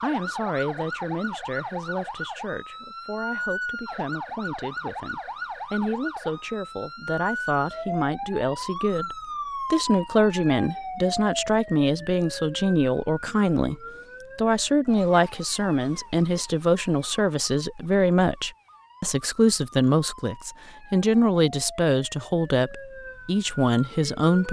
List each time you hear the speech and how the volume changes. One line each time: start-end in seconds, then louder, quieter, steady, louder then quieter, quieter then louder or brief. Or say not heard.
0.0-24.4 louder.